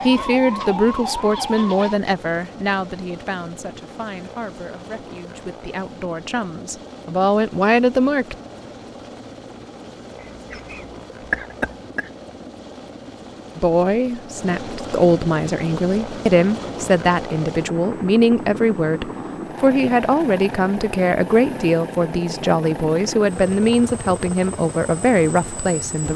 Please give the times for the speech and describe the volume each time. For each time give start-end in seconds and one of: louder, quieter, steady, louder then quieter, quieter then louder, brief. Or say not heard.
0.0-8.3 quieter then louder
13.6-26.1 steady.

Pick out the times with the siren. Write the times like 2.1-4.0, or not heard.
0.0-2.0.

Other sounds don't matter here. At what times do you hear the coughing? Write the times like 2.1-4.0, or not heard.
10.2-12.1.